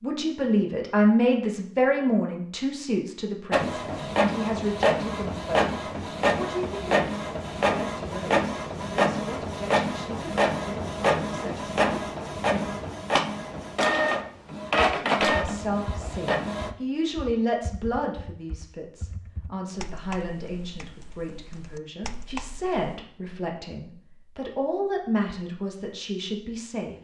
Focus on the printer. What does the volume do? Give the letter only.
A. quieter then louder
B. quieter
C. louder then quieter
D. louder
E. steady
E.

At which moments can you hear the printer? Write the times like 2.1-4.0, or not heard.
3.5-16.7.